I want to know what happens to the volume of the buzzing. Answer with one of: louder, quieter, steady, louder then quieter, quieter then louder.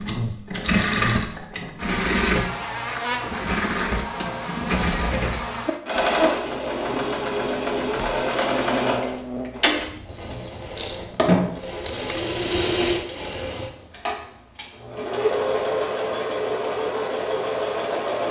steady.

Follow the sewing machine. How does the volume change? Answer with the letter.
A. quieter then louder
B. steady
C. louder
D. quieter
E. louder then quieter
B.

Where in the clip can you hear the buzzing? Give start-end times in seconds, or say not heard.
0.0-9.5.